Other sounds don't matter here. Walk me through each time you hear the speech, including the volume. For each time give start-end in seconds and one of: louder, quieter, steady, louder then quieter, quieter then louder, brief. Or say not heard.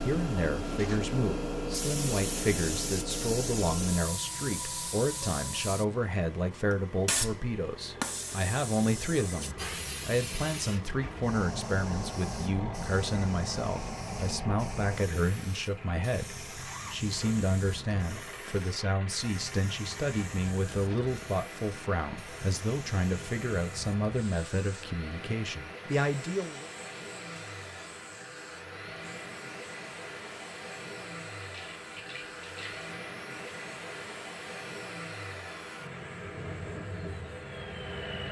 0.0-26.6 steady.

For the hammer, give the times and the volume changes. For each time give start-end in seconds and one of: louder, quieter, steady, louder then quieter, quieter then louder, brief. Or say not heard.
not heard.